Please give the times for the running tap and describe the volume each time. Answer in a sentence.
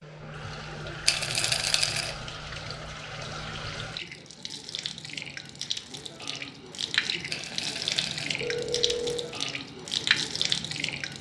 The running tap can be heard from 0.0 to 11.1 s, getting louder.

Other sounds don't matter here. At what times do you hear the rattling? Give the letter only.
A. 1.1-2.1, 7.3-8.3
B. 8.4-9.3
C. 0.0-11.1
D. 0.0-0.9
A.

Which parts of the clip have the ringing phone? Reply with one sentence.
You can hear the ringing phone from 8.4 to 9.3 s.